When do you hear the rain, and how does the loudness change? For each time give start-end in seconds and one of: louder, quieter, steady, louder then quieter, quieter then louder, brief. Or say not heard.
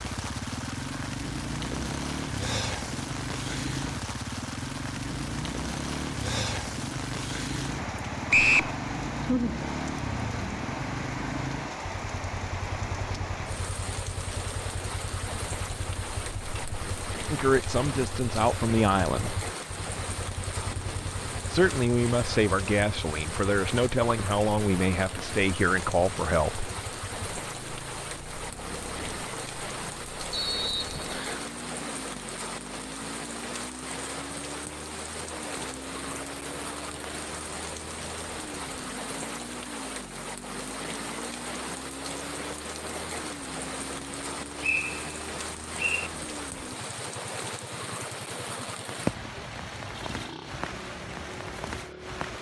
0.0-52.3 steady.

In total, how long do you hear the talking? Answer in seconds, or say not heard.
7 s.